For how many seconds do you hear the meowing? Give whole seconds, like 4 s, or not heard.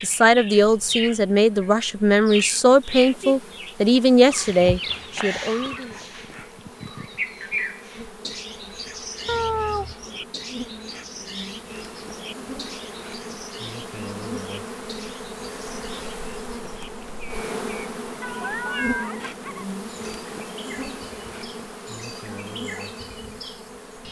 3 s.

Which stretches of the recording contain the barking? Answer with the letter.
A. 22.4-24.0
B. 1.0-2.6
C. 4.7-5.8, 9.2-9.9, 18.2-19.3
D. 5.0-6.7
D.